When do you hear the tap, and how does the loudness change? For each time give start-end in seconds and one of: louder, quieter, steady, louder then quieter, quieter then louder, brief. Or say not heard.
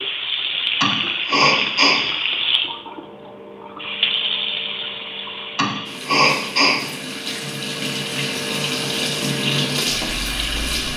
0.0-10.9 quieter then louder.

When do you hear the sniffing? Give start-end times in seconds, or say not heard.
0.8-2.0, 5.5-6.8.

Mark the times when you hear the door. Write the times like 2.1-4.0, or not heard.
not heard.